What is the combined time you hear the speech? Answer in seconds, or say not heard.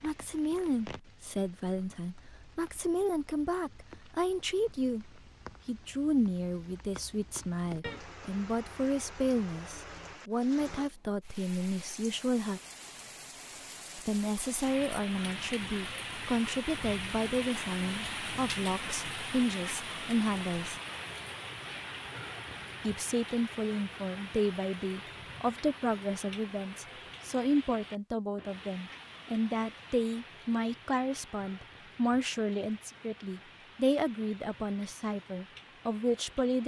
33 s.